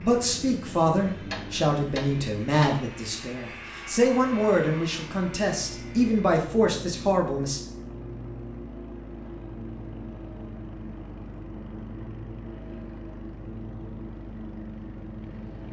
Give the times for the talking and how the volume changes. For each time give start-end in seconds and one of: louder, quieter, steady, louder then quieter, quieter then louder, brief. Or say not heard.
0.0-7.6 steady.